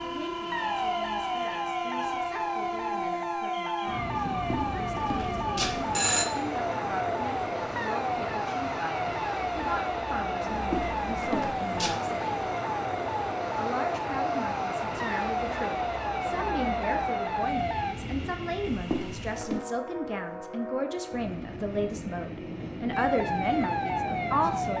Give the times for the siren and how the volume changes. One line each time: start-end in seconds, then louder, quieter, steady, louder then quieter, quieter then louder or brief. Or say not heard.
0.0-17.9 steady
22.9-24.7 brief.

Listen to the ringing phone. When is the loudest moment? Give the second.
6 s.